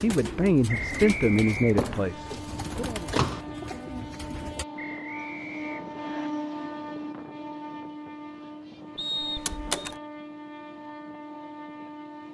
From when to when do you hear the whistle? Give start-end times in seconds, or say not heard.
0.7-1.9, 4.8-6.3, 8.9-9.8.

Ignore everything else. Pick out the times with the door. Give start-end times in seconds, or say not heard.
1.8-3.4, 9.3-9.9.